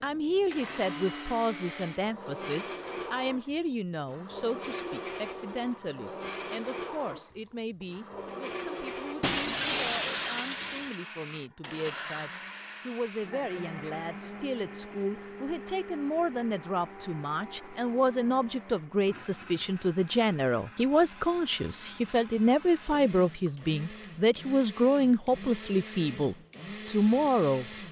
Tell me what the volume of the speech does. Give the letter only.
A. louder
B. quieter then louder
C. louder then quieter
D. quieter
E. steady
B.